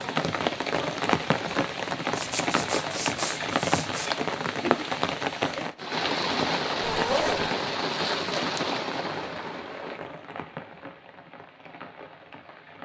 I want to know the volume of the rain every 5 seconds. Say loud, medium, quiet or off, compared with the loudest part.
loud, loud, quiet.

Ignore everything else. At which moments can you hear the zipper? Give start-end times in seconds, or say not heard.
2.1-4.1, 6.8-7.5.